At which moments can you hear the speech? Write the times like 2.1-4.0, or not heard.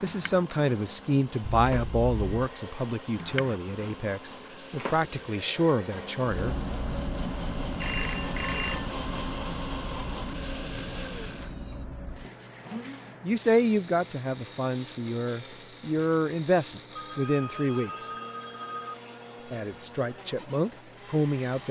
0.0-6.5, 13.2-18.1, 19.5-21.6.